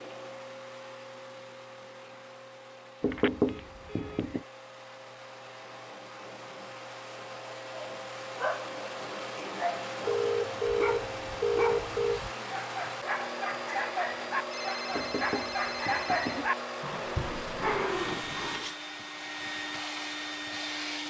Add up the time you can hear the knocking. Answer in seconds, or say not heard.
3 s.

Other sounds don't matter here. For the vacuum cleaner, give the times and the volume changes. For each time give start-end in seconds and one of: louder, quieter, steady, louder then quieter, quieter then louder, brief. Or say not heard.
0.0-21.0 louder.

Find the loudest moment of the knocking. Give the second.
3 s.